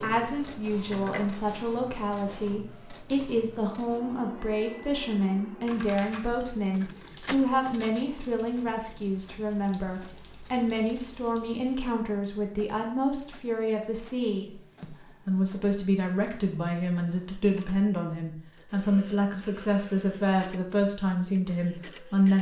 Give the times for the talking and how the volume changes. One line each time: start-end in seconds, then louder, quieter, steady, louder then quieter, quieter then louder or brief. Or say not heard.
0.0-22.3 steady.